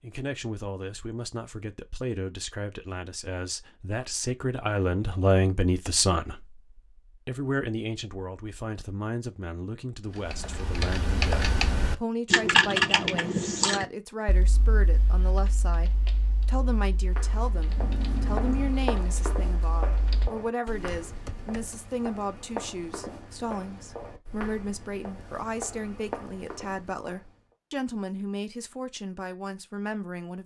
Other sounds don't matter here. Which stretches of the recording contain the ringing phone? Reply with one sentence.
You can hear the ringing phone from 17.8 to 18.8 s.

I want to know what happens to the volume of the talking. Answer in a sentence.
The loudness of the talking stays about the same.